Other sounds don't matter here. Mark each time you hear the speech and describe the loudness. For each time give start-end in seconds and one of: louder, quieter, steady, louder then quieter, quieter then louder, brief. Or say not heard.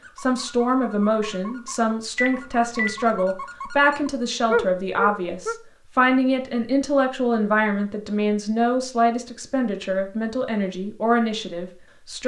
0.1-12.2 steady.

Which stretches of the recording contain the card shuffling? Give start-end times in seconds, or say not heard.
not heard.